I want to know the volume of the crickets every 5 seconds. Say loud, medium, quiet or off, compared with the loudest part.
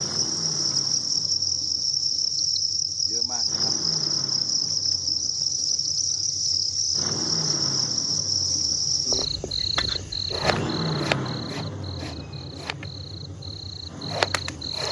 loud, loud, medium.